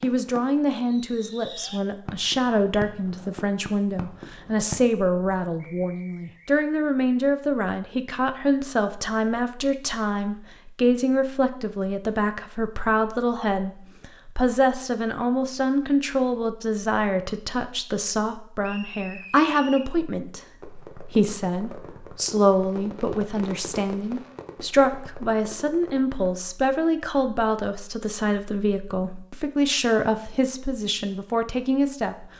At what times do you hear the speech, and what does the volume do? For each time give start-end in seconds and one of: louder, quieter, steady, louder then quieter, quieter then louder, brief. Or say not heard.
0.0-32.3 steady.